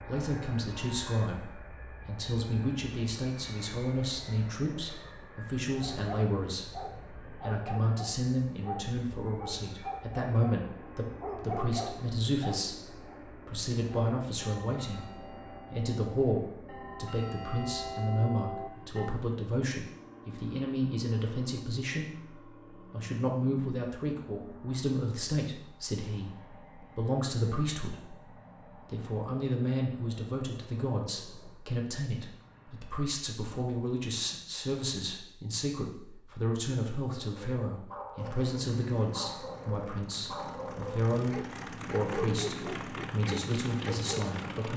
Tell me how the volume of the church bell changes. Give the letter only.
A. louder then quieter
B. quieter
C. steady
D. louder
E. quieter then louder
D.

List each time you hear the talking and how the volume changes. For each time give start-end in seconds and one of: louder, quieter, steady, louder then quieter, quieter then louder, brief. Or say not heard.
0.1-44.7 steady.